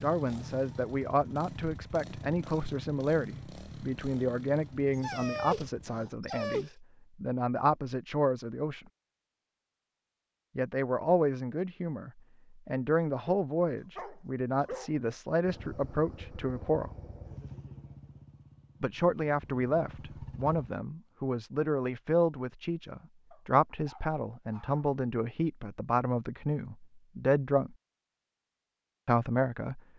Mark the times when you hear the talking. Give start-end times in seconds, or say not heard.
0.0-8.8, 10.6-16.9, 18.8-27.8, 29.1-29.8.